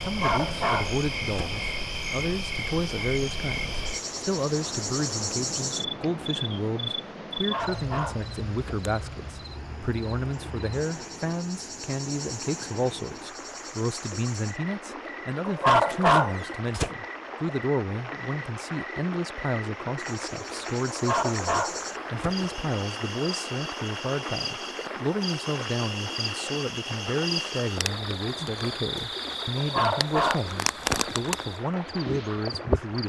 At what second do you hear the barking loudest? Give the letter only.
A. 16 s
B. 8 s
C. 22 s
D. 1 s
A.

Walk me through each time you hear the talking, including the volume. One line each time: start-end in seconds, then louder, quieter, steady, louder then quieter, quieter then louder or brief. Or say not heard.
0.0-33.0 steady.